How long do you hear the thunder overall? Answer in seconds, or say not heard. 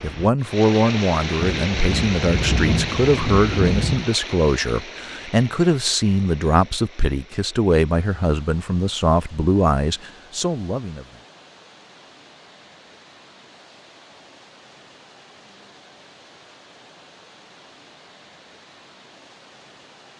3 s.